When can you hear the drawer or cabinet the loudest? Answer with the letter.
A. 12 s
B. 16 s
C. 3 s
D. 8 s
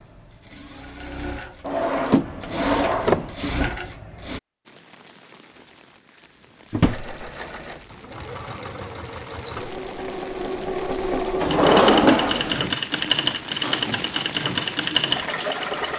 A.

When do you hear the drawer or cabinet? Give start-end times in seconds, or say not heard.
1.6-3.3, 6.7-7.2, 11.4-12.8.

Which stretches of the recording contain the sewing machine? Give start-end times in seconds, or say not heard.
0.0-4.4, 6.8-15.9.